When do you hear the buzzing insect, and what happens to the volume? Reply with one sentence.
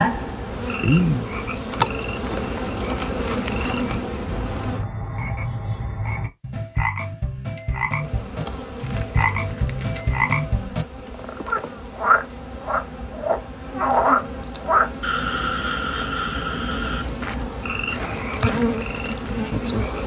You can hear the buzzing insect from 0.0 to 4.8 s, getting quieter; and from 8.0 to 20.0 s, getting louder.